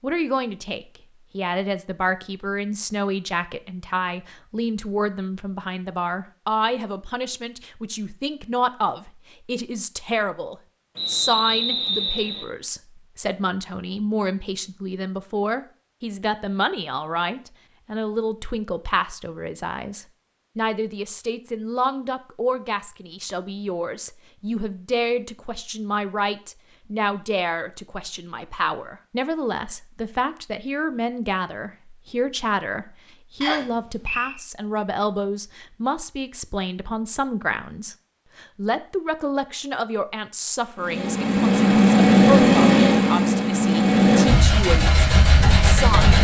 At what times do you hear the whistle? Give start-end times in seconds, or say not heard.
10.9-12.4, 33.4-34.4.